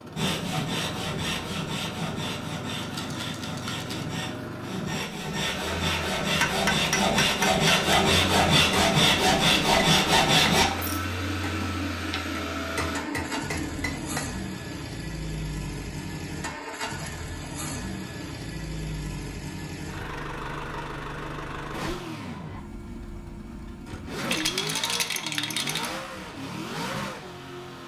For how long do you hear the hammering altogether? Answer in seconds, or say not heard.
8 s.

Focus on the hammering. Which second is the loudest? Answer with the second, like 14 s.
7 s.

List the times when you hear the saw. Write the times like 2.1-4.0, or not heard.
0.1-10.7.